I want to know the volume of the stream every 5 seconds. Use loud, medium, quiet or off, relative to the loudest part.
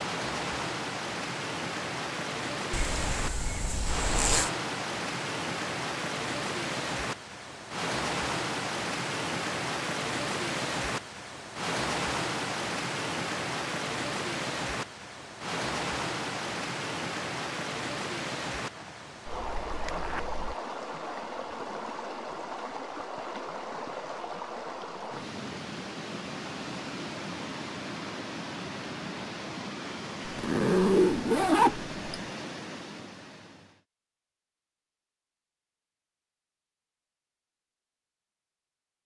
loud, loud, loud, loud, medium, medium, medium, off.